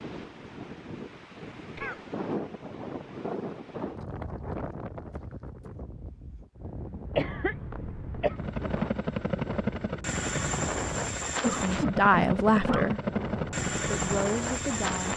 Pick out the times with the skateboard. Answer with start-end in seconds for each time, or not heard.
not heard.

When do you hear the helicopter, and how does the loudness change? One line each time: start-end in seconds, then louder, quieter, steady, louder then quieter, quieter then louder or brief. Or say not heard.
8.2-15.1 steady.